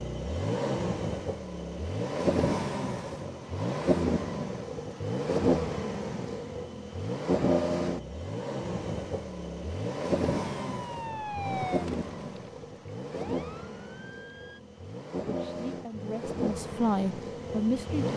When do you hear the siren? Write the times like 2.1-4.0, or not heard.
10.5-14.6.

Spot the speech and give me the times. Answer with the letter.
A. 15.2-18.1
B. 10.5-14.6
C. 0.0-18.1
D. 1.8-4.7
A.